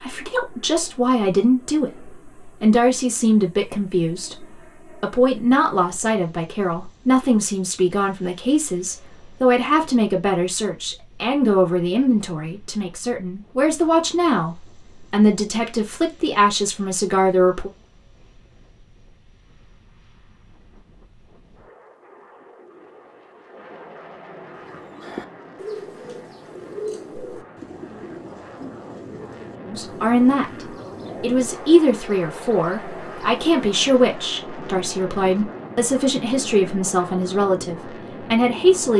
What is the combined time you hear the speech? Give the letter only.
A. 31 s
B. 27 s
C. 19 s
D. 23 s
B.